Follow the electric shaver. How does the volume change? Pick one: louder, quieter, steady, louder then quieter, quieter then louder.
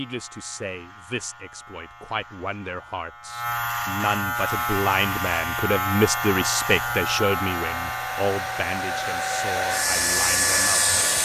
louder then quieter.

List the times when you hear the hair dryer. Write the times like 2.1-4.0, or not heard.
4.3-11.1.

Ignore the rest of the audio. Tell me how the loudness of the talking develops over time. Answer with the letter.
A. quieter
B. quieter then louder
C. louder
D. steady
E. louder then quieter
E.